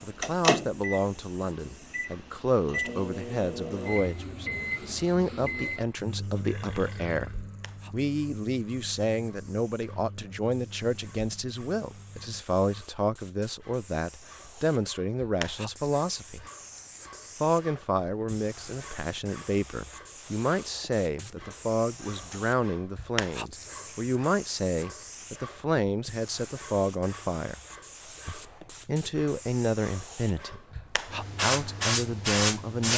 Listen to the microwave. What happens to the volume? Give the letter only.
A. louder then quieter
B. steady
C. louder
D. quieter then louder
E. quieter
E.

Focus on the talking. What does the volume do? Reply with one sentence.
The loudness of the talking stays about the same.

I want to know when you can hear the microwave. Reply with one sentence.
The microwave can be heard from 0.0 to 12.4 s.